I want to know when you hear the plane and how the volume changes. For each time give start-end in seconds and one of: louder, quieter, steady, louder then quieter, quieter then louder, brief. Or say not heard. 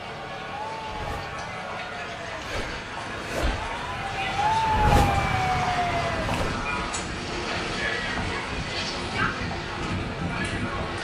0.0-10.9 louder.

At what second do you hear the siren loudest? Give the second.
5 s.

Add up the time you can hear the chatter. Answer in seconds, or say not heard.
11 s.